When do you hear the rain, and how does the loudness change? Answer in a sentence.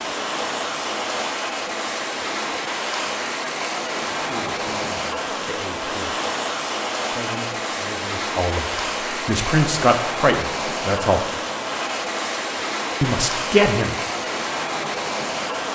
The rain can be heard from 0.0 to 15.6 s, at a steady volume.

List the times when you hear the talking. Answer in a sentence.
The talking can be heard from 4.2 to 6.2 s, from 7.1 to 11.3 s and from 13.0 to 13.9 s.